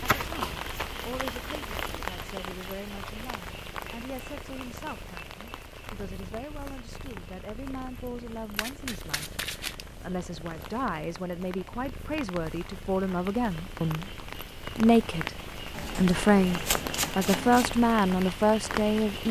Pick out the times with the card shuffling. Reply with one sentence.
You can hear the card shuffling from 0.1 to 2.0 s, from 8.6 to 9.8 s and from 15.7 to 17.8 s.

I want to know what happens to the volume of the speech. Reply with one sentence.
The loudness of the speech goes up.